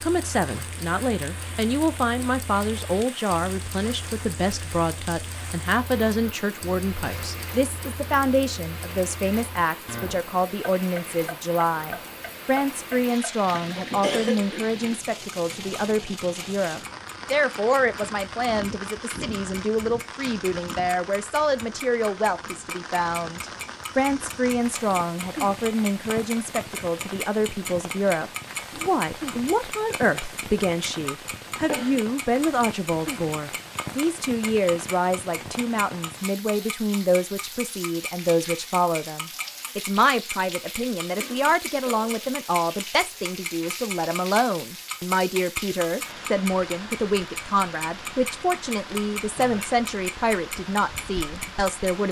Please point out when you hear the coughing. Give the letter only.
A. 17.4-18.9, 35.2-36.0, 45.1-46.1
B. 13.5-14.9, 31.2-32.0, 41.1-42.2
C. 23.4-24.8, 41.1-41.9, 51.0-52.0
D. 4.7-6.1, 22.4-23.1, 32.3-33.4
B.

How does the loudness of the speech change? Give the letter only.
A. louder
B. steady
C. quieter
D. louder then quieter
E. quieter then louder
B.